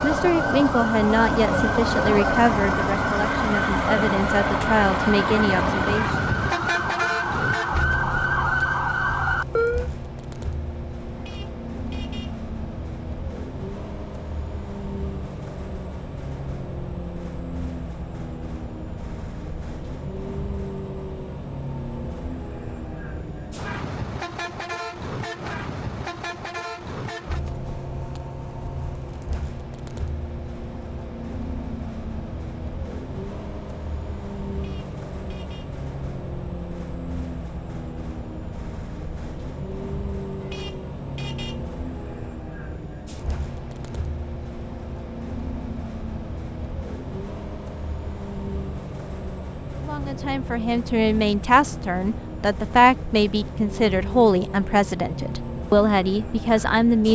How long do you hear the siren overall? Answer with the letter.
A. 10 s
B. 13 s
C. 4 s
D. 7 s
A.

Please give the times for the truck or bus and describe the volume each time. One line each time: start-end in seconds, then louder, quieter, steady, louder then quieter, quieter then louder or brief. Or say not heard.
0.0-57.0 quieter.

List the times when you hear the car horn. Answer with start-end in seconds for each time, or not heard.
11.2-12.3, 34.5-35.7, 40.4-41.6.